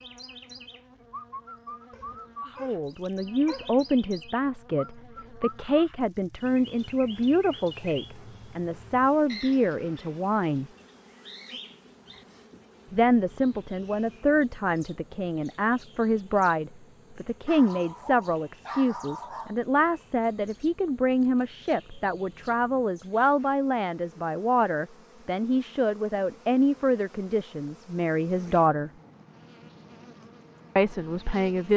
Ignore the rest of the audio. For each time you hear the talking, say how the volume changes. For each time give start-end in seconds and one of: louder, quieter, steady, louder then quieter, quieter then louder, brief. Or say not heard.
2.6-10.7 steady
12.9-28.9 steady
30.8-31.7 brief.